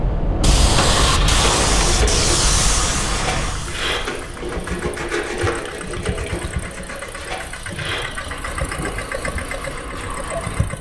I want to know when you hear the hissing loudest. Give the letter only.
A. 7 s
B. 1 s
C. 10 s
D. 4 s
B.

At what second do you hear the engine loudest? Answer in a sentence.
The loudest moment of the engine is at 1 second.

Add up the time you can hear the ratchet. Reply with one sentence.
The ratchet can't be heard in this clip.